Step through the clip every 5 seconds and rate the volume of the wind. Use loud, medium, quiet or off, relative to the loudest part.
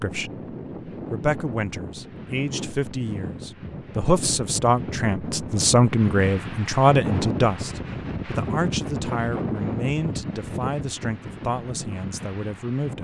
medium, loud, medium.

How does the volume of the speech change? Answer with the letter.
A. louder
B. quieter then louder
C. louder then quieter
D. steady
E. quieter
C.